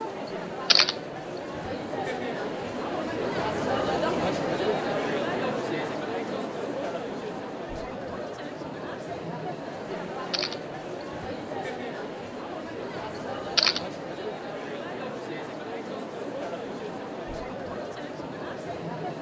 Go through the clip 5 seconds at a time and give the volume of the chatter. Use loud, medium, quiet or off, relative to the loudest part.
loud, loud, medium, medium.